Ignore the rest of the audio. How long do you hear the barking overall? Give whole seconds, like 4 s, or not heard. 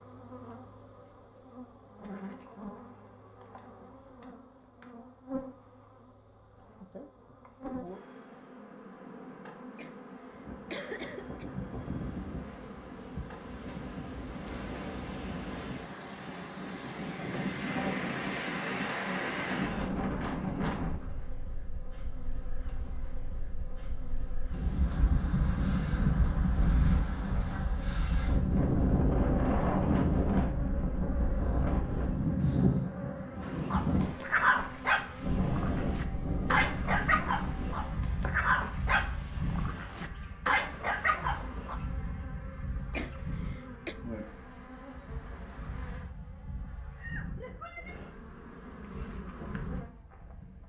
8 s.